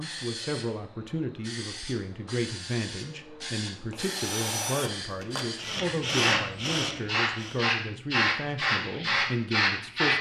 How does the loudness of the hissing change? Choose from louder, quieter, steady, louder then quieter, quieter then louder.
louder.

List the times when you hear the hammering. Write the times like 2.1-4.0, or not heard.
not heard.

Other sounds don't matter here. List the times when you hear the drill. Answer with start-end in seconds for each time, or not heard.
4.0-7.6.